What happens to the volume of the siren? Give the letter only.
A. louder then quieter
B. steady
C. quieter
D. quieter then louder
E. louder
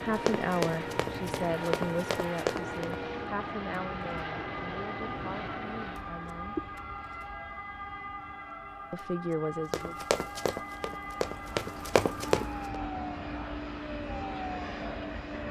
B.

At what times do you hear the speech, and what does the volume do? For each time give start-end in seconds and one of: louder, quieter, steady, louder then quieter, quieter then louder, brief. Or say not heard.
0.0-6.6 quieter
8.9-9.9 brief.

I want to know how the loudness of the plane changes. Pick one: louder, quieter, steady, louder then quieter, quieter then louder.
quieter then louder.